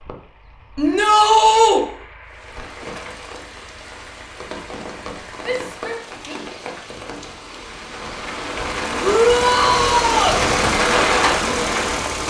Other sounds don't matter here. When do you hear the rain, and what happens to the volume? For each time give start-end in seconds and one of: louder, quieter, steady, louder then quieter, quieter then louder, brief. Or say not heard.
2.2-12.2 louder.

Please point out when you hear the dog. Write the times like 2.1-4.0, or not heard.
not heard.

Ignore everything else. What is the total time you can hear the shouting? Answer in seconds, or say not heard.
3 s.